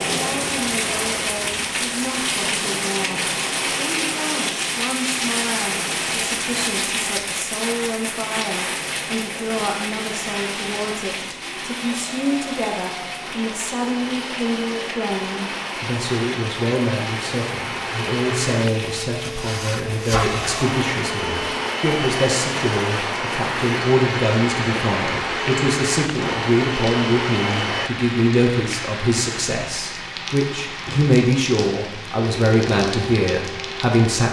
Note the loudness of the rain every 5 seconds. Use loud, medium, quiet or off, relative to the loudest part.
loud, loud, medium, medium, medium, medium, medium.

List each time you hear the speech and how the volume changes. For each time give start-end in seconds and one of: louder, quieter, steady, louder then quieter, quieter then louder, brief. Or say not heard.
0.1-34.2 louder.